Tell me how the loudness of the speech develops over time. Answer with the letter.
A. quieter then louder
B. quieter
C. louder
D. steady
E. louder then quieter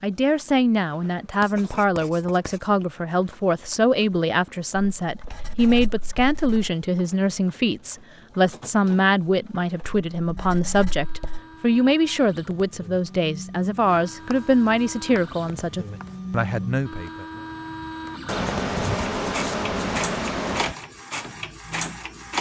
D.